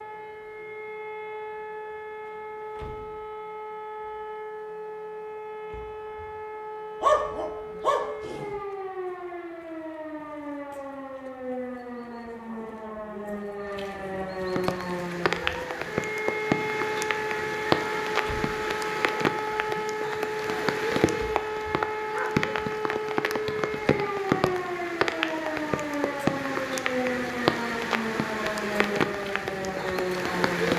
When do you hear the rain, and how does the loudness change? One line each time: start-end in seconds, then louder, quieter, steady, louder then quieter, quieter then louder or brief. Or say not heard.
14.4-30.7 steady.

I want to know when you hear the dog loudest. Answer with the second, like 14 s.
7 s.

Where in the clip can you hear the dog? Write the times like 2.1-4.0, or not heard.
7.0-8.6.